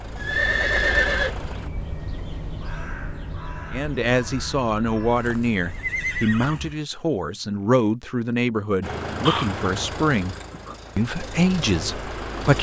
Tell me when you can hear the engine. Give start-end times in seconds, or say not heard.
0.0-1.7, 8.8-12.5.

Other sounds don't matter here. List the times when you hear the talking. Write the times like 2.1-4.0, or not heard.
3.7-10.3, 10.9-12.5.